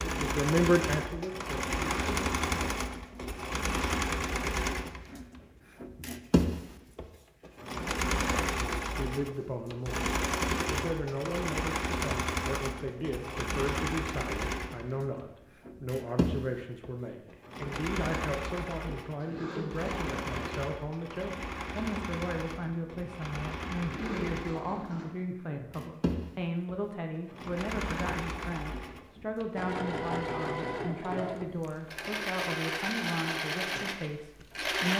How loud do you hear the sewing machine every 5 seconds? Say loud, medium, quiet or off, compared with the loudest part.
loud, loud, loud, medium, medium, medium, loud.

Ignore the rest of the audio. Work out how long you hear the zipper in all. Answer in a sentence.
You can hear the zipper for 3 seconds altogether.